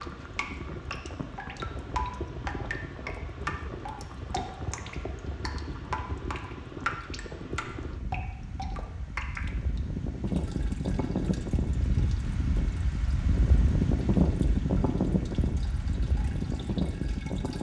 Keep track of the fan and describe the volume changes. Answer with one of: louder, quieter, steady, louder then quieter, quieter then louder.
louder.